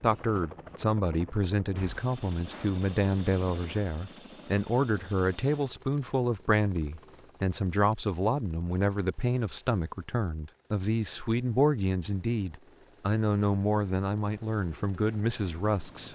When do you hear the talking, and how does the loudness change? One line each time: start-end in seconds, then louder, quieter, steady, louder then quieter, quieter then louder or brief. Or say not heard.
0.0-16.1 steady.